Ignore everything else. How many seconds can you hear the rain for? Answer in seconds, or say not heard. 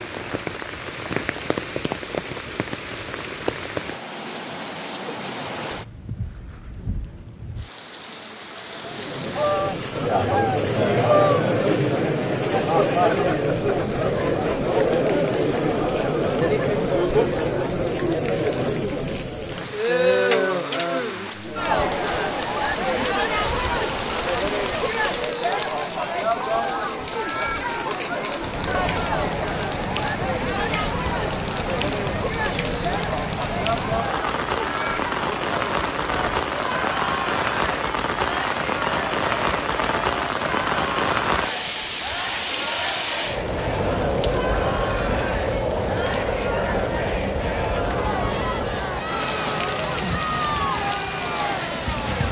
52 s.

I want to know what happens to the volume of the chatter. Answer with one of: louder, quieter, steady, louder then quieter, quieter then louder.
quieter.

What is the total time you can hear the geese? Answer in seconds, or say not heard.
2 s.